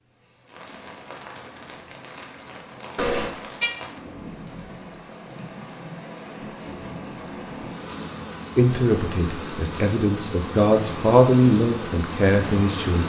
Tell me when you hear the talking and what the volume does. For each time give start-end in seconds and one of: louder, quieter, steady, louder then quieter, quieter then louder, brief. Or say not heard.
8.6-13.0 louder then quieter.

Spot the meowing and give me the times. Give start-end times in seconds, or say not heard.
3.0-3.7.